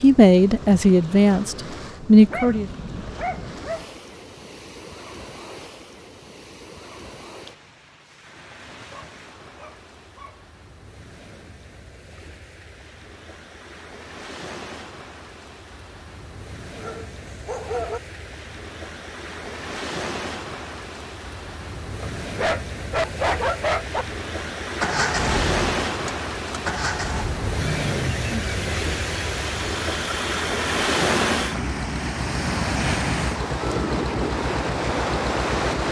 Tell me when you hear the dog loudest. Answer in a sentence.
The loudest moment of the dog is at 23 seconds.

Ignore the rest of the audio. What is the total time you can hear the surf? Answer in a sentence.
The surf can be heard for 36 seconds in total.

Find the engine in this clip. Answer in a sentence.
You can hear the engine from 24.7 to 35.8 s.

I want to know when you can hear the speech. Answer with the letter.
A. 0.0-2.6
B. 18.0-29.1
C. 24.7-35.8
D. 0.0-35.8
A.